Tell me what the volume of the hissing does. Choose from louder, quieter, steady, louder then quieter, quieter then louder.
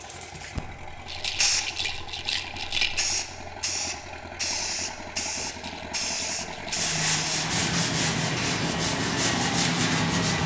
steady.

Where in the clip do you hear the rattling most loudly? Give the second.
3 s.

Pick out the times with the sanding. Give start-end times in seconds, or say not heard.
6.8-10.4.